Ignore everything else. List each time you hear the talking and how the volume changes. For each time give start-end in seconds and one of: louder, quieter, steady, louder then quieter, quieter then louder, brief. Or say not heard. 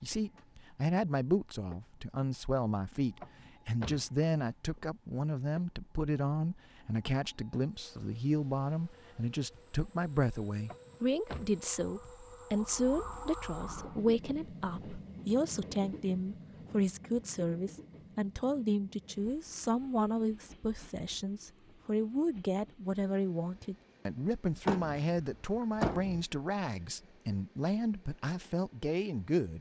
0.0-29.5 steady.